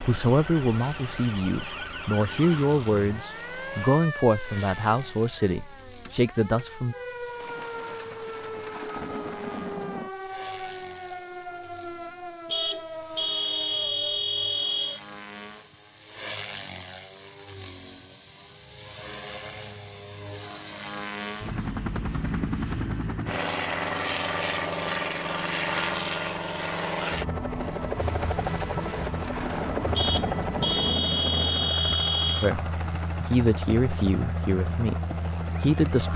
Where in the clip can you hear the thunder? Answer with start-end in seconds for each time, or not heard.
7.4-10.1, 28.0-31.7.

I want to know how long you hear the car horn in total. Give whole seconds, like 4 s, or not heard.
5 s.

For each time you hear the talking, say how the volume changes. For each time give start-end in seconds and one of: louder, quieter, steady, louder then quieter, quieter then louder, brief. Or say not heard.
0.1-7.0 steady
32.4-35.0 brief
35.6-36.1 brief.